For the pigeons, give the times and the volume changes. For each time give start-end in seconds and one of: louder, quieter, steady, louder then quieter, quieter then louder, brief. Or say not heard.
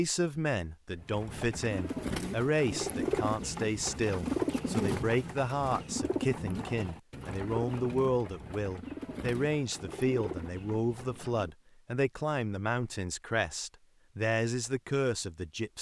0.9-11.5 quieter.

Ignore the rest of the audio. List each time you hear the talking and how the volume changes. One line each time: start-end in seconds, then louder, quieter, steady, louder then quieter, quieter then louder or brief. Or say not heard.
0.0-15.7 steady.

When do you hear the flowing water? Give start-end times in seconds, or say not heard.
not heard.